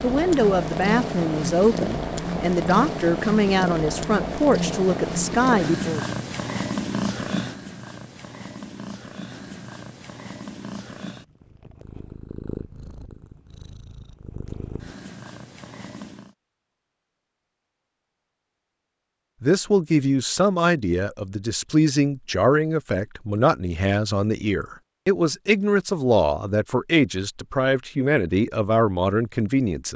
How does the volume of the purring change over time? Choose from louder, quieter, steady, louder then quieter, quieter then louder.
quieter.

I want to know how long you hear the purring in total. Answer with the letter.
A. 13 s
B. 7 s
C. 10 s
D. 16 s
D.